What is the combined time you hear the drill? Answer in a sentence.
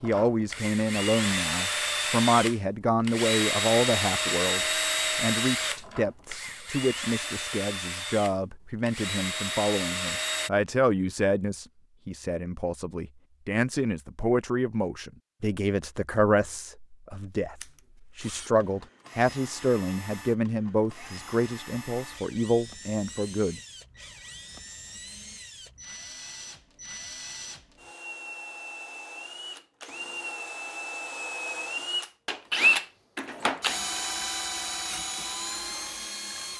You can hear the drill for 30 seconds altogether.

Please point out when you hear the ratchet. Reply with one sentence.
The ratchet can't be heard in this clip.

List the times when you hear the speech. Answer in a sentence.
You can hear the speech from 0.0 to 23.6 s.